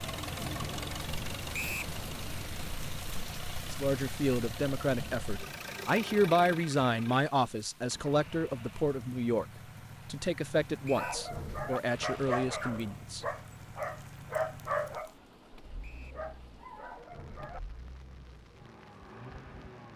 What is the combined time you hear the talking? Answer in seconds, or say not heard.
9 s.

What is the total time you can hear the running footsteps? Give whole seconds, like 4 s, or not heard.
not heard.